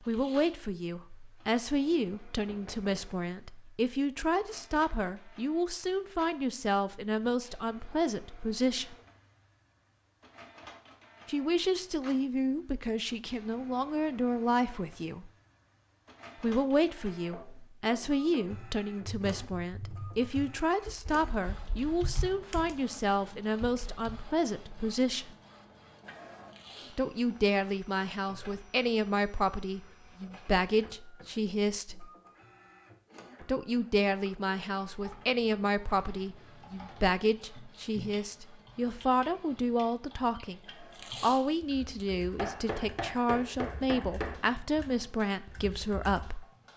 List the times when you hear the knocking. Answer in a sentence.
You can hear the knocking from 2.4 to 3.0 s, from 17.2 to 18.5 s and from 42.4 to 44.4 s.